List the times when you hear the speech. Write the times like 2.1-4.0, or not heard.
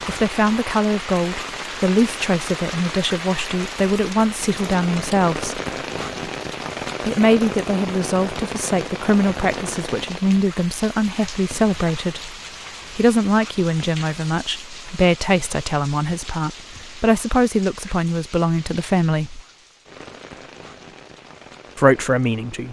0.1-5.6, 7.0-12.3, 12.9-19.4, 21.8-22.6.